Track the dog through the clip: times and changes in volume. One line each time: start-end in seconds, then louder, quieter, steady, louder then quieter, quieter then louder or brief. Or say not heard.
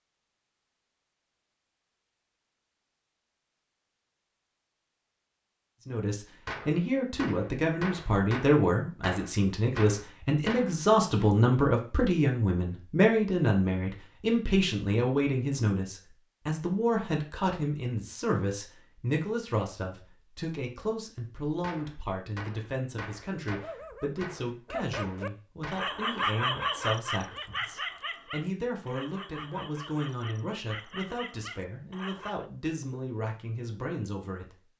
23.4-32.5 louder then quieter.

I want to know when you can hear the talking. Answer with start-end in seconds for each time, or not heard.
5.8-34.6.